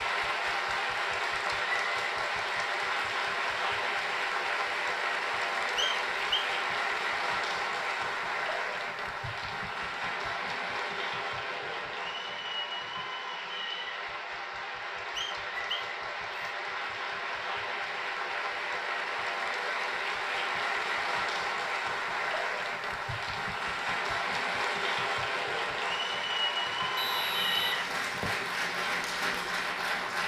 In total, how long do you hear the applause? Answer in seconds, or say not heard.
30 s.